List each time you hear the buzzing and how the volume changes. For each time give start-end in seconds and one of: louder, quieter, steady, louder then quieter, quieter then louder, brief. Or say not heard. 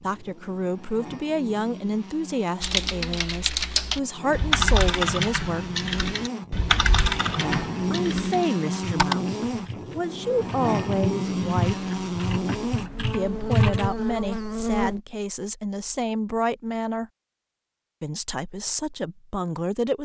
0.0-15.0 louder.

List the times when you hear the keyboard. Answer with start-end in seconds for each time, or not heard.
2.6-13.9.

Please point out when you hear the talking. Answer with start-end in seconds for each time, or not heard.
0.0-5.7, 7.9-11.8, 13.1-17.1, 18.0-20.0.